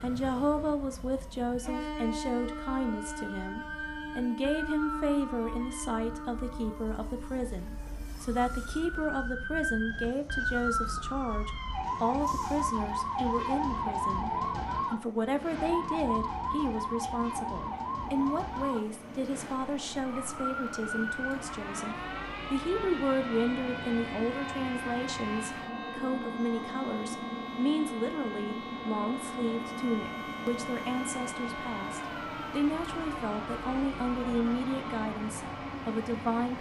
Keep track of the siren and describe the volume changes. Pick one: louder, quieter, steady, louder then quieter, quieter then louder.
louder then quieter.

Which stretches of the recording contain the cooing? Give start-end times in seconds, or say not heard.
not heard.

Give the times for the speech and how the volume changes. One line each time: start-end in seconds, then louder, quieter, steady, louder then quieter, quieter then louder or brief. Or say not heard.
0.0-14.3 steady
14.9-36.5 steady.